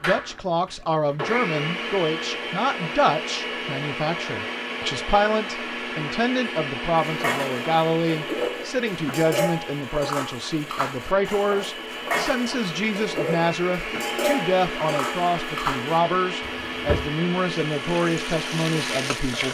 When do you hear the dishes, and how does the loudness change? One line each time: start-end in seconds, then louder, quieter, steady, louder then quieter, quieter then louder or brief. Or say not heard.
7.0-17.1 steady.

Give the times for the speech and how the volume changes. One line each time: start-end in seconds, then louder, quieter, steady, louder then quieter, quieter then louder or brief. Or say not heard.
0.0-19.4 steady.